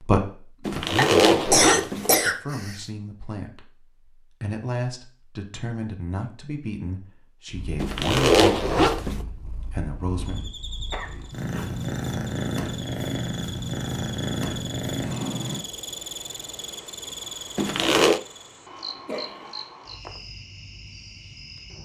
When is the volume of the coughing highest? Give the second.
2 s.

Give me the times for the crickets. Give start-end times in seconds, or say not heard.
10.2-21.7.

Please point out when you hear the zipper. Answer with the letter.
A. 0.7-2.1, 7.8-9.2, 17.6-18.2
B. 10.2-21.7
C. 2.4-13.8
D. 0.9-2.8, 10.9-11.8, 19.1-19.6
A.